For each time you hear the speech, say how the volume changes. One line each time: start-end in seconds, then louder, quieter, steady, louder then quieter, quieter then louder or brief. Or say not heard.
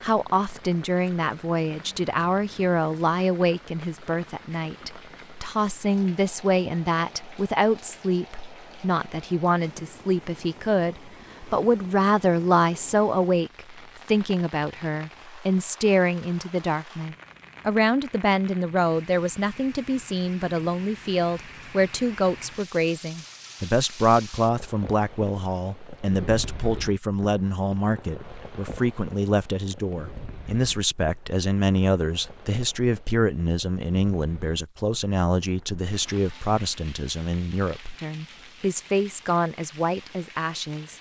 0.0-40.9 steady.